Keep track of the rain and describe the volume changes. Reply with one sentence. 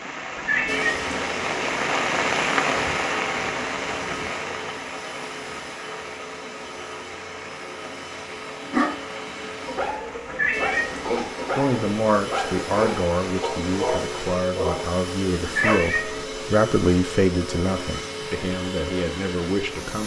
The volume of the rain goes down.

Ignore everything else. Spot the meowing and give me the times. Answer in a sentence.
The meowing can be heard from 0.3 to 1.0 s, from 10.2 to 11.1 s and from 15.4 to 16.2 s.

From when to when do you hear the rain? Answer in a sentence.
You can hear the rain from 0.0 to 14.2 s.